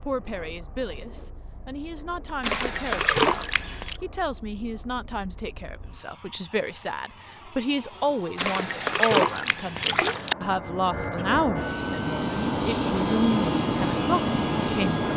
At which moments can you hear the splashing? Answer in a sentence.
The splashing can be heard from 2.4 to 4.0 s and from 8.3 to 10.3 s.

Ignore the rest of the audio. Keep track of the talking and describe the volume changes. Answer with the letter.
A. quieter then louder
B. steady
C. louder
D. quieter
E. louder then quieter
C.